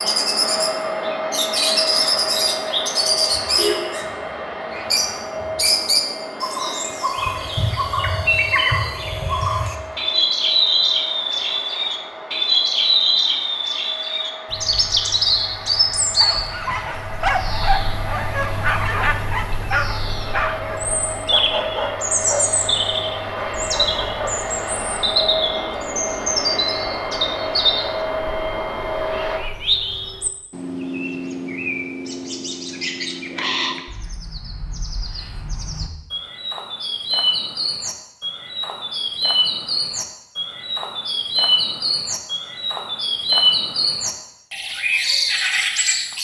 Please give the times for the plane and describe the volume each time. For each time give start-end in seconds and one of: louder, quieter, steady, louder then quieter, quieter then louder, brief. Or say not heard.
0.0-29.4 quieter then louder.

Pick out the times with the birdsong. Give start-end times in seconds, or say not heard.
0.0-46.1.